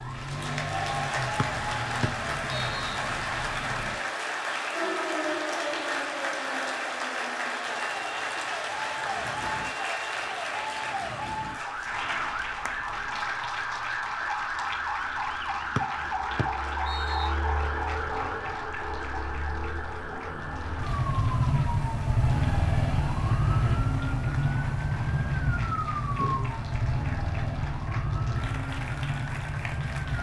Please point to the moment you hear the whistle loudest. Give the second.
16 s.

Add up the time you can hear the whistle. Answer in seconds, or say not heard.
3 s.